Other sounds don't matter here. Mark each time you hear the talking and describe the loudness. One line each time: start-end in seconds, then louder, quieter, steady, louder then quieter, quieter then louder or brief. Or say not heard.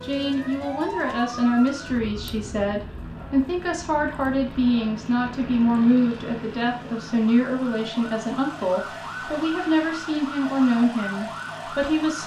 0.0-12.2 steady.